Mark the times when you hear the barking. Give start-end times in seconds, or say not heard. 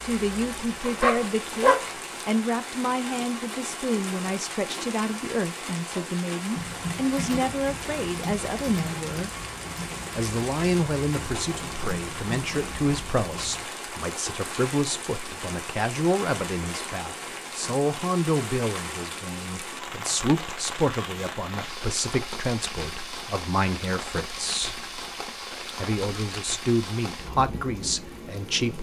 0.1-1.9.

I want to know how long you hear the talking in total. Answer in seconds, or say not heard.
27 s.